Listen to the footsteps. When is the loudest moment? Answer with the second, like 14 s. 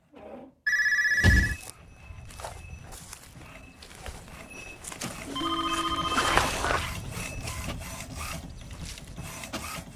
6 s.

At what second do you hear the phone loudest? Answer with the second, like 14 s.
1 s.